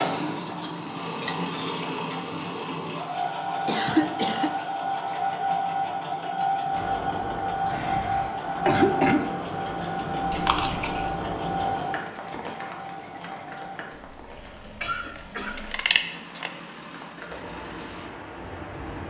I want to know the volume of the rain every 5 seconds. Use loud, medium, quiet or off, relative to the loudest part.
off, loud, loud, loud.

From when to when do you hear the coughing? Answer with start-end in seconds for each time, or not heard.
3.6-4.5, 7.7-9.2, 14.3-15.6.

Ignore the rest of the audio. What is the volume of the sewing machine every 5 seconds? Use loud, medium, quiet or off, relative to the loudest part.
loud, loud, medium, quiet.